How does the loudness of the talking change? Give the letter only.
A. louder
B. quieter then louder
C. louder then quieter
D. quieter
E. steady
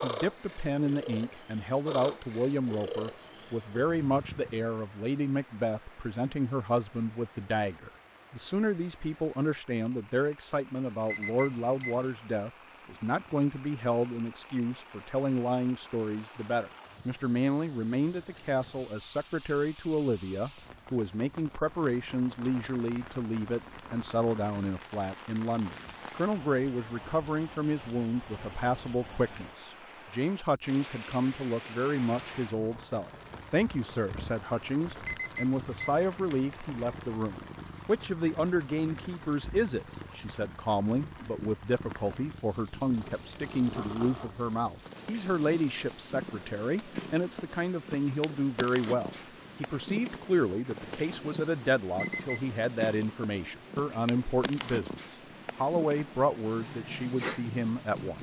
E.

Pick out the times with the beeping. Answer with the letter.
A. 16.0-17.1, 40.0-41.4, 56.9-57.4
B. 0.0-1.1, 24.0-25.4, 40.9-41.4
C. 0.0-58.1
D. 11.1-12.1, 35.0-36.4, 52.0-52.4
D.